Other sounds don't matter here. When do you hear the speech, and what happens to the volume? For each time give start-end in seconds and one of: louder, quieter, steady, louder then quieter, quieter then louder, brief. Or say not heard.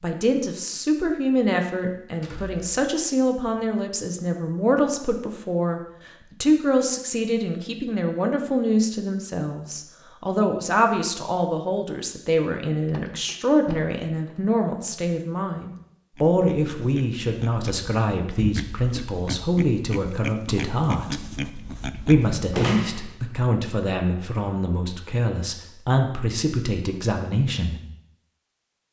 0.0-27.8 steady.